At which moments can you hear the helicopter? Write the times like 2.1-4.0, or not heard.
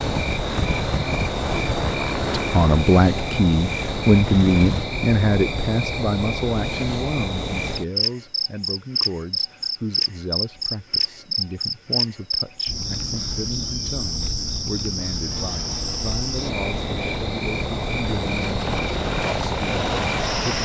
0.0-4.8, 15.2-20.6.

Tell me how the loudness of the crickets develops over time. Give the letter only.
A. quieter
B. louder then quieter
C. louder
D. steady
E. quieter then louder
D.